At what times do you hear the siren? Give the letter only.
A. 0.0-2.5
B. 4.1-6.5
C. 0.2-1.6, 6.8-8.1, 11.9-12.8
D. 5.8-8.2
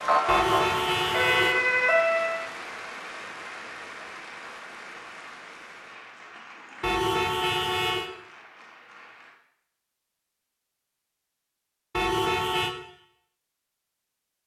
A.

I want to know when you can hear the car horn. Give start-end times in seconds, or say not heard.
0.2-1.6, 6.8-8.1, 11.9-12.8.